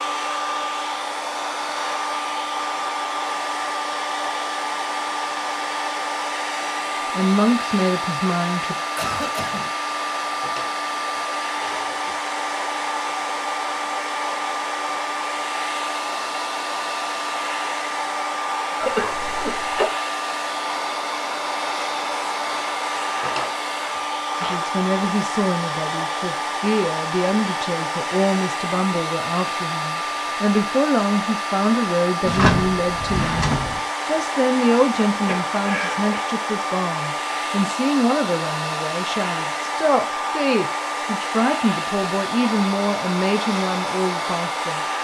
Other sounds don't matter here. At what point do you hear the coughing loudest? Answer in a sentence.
The volume of the coughing peaks at 19 seconds.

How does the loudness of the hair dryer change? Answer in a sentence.
The volume of the hair dryer stays about the same.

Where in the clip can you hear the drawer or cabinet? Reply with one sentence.
The drawer or cabinet can be heard from 10.2 to 12.2 s, from 23.0 to 24.6 s and from 32.2 to 33.8 s.